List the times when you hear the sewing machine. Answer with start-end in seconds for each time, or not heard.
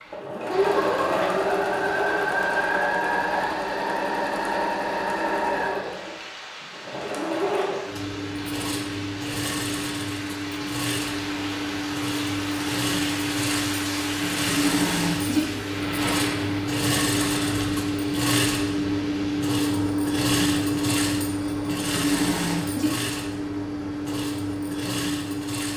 0.0-25.7.